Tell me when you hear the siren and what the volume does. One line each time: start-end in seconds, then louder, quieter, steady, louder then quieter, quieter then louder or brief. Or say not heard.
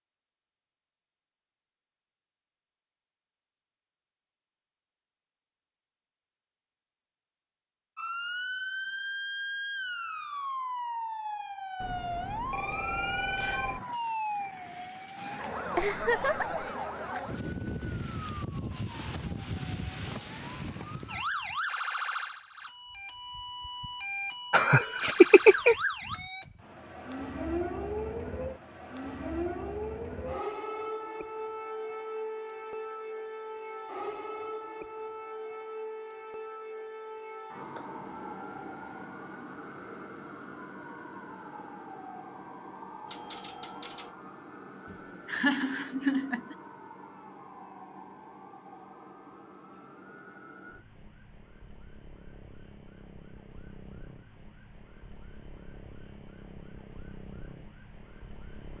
8.0-58.7 quieter.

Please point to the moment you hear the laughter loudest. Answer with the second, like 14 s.
25 s.